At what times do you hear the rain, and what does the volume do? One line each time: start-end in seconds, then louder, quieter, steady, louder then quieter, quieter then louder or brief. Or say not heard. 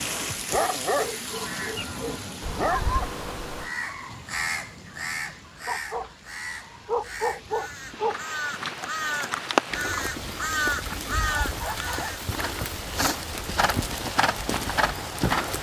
0.0-15.5 quieter then louder.